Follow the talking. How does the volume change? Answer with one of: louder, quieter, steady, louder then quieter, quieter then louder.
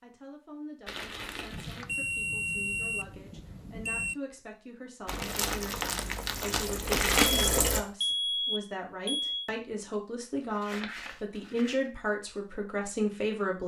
louder.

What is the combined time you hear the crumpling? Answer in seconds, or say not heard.
5 s.